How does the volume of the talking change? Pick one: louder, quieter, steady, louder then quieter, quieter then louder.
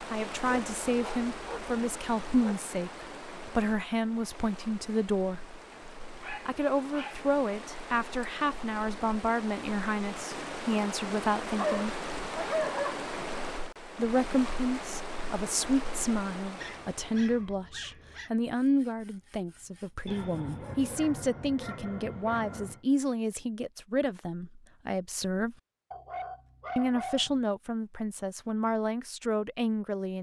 steady.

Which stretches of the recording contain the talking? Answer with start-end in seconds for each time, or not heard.
0.1-5.5, 6.5-11.9, 13.9-25.6, 26.8-30.1.